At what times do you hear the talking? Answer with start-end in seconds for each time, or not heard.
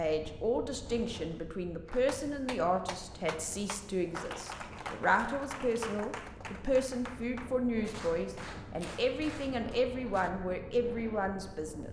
0.0-11.8.